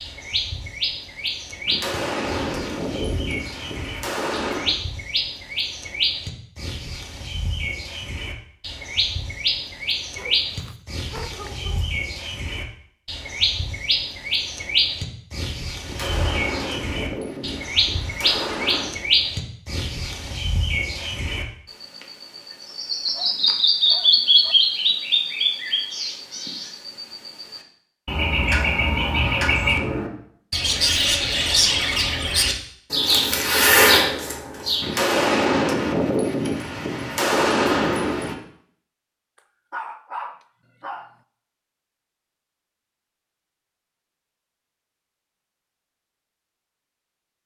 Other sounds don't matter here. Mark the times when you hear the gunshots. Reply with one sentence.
The gunshots can be heard from 1.6 to 4.8 s, from 15.8 to 18.9 s and from 34.8 to 38.4 s.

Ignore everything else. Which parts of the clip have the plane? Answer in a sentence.
You can't hear the plane here.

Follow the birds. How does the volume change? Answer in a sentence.
The loudness of the birds goes up.